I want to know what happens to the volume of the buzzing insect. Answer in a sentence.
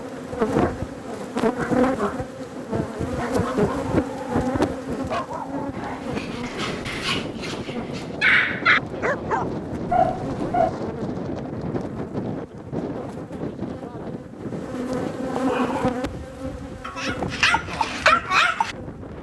The loudness of the buzzing insect goes down, then up.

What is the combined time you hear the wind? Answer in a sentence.
The wind can be heard for 19 seconds in total.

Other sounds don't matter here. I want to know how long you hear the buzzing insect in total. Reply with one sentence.
The buzzing insect can be heard for 19 seconds in total.